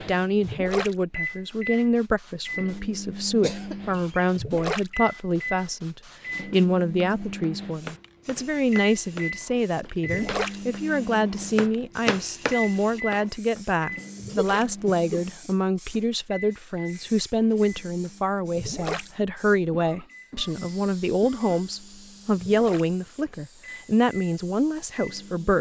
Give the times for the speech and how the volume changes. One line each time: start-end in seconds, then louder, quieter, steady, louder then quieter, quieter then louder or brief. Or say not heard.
0.0-25.5 steady.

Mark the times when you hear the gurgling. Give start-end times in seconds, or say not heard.
0.4-0.9, 4.3-4.9, 10.0-10.6, 14.2-14.7, 18.6-19.1, 22.4-22.9.